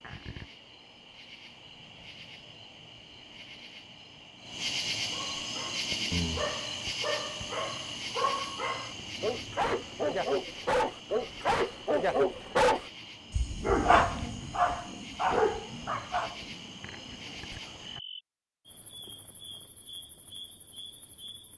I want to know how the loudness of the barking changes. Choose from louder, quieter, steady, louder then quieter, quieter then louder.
louder.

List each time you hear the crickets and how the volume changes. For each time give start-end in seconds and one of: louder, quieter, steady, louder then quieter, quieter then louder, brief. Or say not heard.
0.0-21.5 louder then quieter.